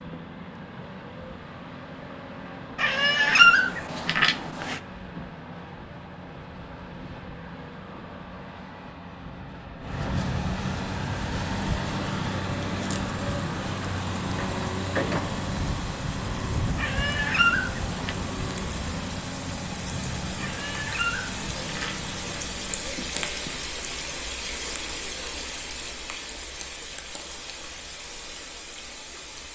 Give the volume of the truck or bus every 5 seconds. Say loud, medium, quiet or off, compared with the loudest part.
medium, medium, loud, loud, medium, off.